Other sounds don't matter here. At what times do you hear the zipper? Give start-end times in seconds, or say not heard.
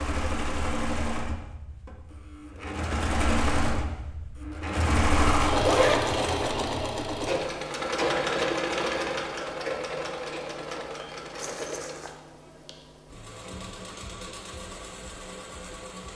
5.5-6.5, 11.3-12.2.